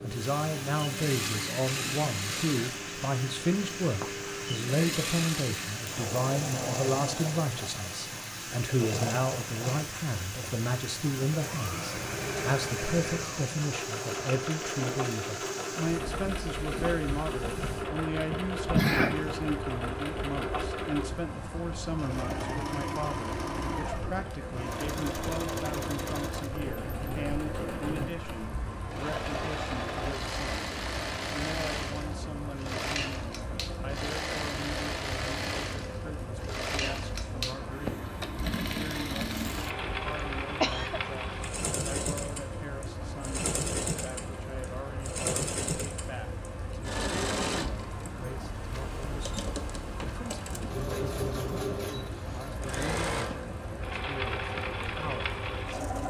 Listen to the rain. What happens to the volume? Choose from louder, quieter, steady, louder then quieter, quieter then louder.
steady.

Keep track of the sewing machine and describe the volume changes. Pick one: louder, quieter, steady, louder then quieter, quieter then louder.
steady.